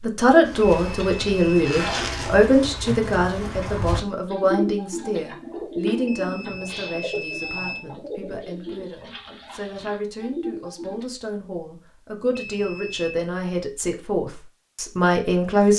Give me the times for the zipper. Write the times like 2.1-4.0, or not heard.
1.2-2.4.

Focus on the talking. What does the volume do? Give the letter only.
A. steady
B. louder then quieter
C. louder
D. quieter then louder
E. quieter
D.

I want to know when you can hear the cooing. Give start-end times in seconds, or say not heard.
0.4-11.1.